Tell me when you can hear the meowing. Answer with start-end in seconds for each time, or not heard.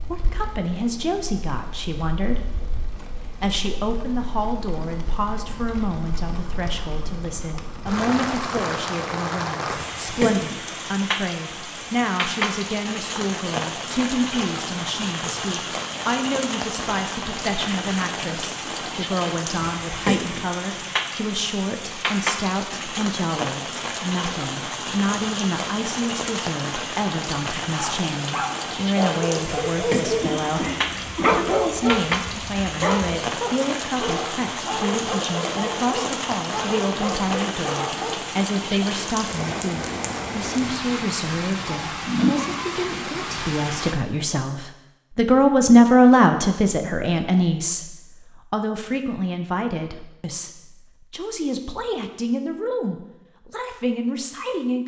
not heard.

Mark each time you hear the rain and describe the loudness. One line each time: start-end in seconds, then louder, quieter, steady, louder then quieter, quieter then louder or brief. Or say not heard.
0.0-44.0 louder.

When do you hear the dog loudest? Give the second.
31 s.